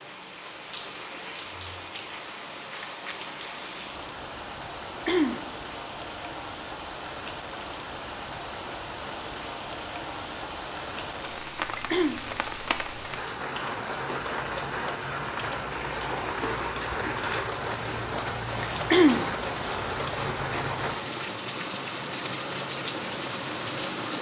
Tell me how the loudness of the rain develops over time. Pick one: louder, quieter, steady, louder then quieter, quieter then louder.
louder.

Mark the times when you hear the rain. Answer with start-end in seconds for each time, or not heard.
0.0-24.1.